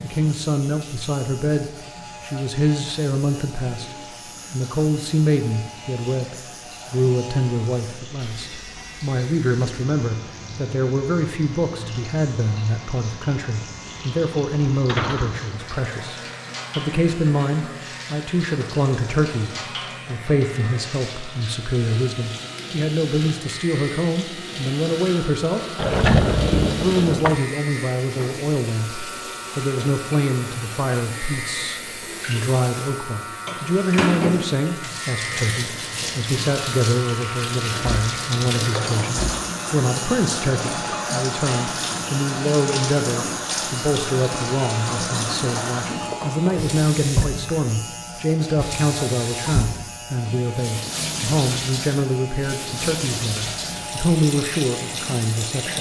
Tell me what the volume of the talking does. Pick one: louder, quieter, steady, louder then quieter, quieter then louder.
steady.